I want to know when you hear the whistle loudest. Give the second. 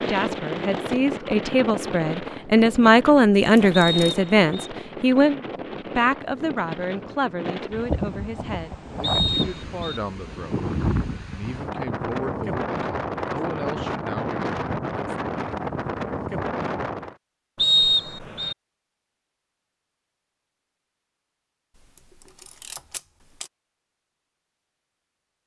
18 s.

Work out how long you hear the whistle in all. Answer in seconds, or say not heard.
3 s.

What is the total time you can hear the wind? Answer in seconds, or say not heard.
17 s.